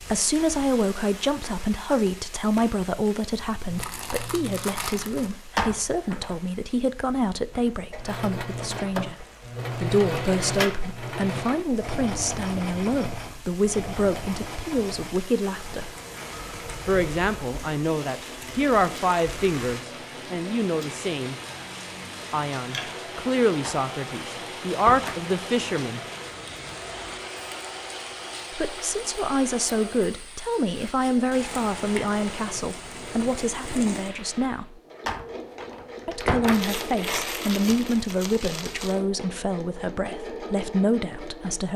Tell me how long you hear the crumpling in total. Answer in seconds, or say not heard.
4 s.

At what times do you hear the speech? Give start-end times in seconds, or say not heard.
0.0-15.9, 16.9-21.4, 22.3-26.0, 28.5-34.8, 36.0-41.7.